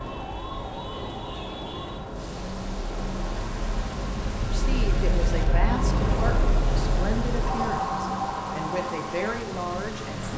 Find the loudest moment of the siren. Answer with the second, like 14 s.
8 s.